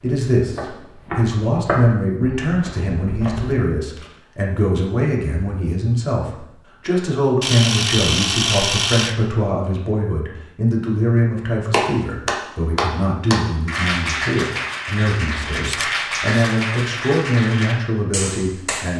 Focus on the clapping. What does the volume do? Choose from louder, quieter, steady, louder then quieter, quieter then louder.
quieter.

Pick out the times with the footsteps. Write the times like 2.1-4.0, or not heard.
0.0-3.6.